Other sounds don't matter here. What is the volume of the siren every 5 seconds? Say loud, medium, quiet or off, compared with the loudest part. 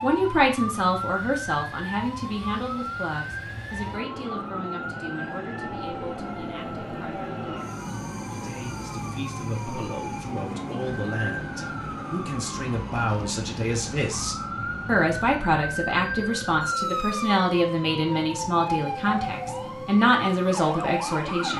loud, medium, medium, loud, loud.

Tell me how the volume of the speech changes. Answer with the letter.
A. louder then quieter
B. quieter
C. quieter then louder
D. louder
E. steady
C.